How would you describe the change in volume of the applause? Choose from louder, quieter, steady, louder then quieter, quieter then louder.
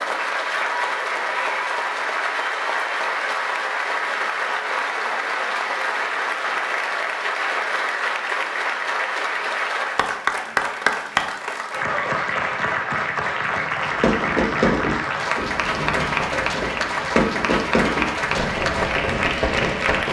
steady.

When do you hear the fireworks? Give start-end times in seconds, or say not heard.
13.9-20.0.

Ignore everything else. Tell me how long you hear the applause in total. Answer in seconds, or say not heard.
20 s.